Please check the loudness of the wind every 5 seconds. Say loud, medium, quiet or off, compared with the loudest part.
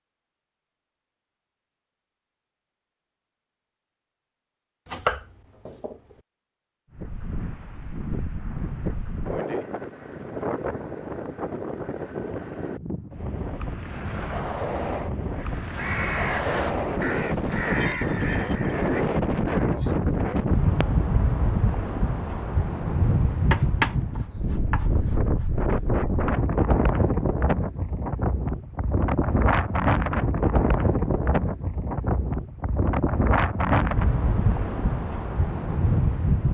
off, medium, medium, loud, loud, loud, loud, loud.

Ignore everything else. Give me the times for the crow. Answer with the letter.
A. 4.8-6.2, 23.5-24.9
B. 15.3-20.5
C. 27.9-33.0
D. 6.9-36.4
B.